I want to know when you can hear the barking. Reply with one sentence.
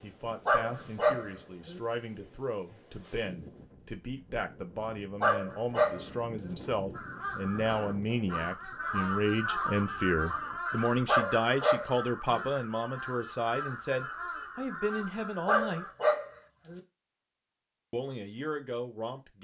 The barking can be heard from 0.5 to 1.8 s, from 5.2 to 6.5 s, from 11.1 to 12.4 s and from 15.4 to 16.8 s.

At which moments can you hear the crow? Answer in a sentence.
The crow can be heard from 6.9 to 15.9 s.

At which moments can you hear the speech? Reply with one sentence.
You can hear the speech from 0.0 to 15.8 s and from 17.9 to 19.4 s.